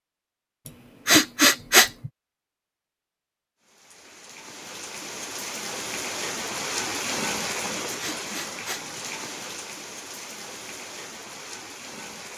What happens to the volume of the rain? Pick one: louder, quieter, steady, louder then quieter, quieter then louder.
louder then quieter.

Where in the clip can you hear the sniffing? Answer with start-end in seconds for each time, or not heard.
0.7-2.1, 8.0-8.8.